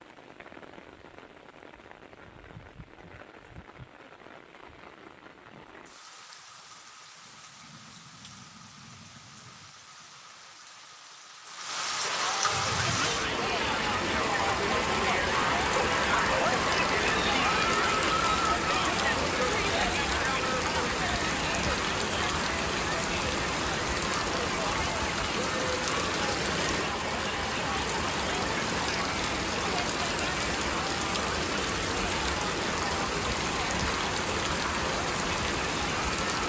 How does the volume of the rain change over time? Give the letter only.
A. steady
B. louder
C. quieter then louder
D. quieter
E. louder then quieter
B.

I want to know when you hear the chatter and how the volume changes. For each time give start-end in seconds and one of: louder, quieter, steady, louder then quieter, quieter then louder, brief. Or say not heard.
12.0-36.4 quieter.